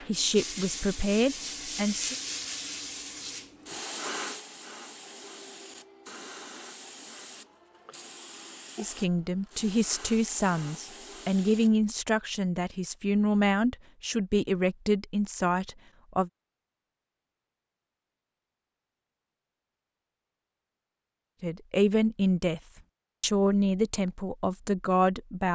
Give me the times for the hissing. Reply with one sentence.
The hissing can be heard from 0.0 to 11.8 s.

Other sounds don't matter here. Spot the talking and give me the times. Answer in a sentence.
The talking can be heard from 0.1 to 2.1 s, from 8.8 to 16.3 s, from 21.4 to 22.6 s and from 23.2 to 25.5 s.